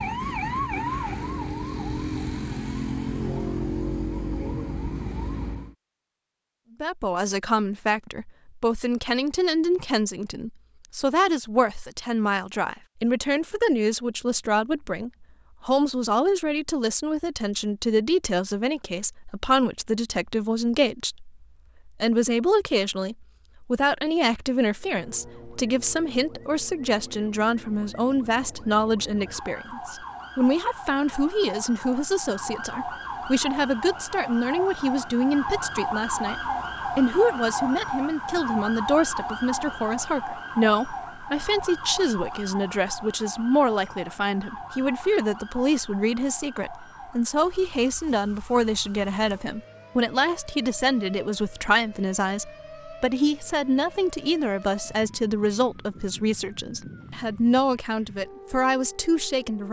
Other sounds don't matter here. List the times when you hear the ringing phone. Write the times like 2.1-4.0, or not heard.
not heard.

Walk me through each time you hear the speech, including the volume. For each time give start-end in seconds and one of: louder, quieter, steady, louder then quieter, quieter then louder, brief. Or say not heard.
6.8-59.6 steady.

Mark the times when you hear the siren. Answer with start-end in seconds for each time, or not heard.
0.0-5.8, 24.8-59.6.